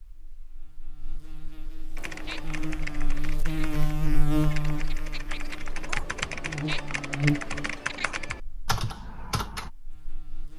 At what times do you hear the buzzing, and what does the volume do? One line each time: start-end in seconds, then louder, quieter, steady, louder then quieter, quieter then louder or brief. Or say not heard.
0.0-10.5 louder then quieter.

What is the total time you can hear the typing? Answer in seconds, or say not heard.
8 s.